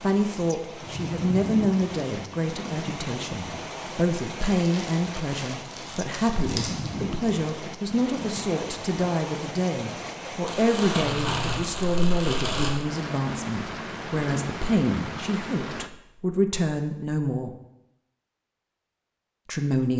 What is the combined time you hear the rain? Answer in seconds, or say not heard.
16 s.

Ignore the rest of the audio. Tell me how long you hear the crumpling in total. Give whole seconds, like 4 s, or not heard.
5 s.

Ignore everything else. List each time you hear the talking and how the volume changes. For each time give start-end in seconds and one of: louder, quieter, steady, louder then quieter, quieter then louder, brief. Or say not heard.
0.0-17.5 steady
19.4-19.9 brief.